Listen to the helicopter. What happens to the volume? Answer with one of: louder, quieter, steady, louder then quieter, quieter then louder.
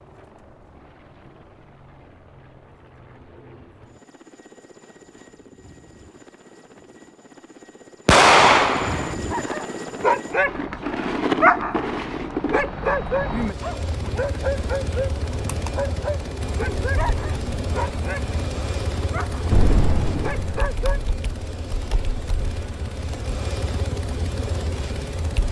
louder.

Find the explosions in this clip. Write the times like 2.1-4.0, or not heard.
8.1-9.1, 19.5-20.7.